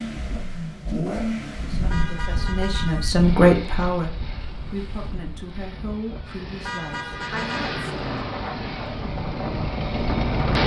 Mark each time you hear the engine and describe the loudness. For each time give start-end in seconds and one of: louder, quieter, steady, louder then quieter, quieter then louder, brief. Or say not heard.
0.0-10.6 quieter then louder.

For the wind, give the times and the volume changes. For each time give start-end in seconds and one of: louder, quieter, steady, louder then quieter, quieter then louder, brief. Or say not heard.
1.6-10.6 quieter then louder.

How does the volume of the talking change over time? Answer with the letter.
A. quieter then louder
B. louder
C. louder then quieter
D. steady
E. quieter
C.